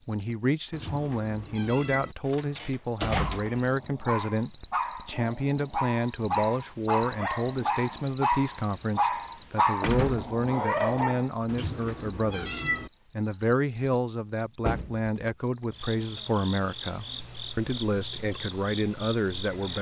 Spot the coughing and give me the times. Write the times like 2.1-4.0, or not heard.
not heard.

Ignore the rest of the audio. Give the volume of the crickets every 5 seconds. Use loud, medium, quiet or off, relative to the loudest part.
medium, loud, medium, quiet.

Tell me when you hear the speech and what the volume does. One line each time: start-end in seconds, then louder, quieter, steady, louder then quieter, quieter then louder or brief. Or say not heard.
0.1-19.7 steady.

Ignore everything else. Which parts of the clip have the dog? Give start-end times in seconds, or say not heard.
3.0-11.3.